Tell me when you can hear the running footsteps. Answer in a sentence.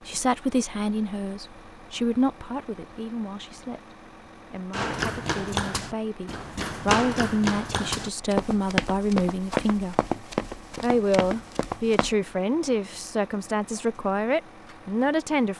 The running footsteps can be heard from 4.7 to 12.2 s.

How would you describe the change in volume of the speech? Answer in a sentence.
The loudness of the speech goes down, then up.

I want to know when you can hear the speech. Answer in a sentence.
You can hear the speech from 0.1 to 10.0 s and from 10.8 to 15.5 s.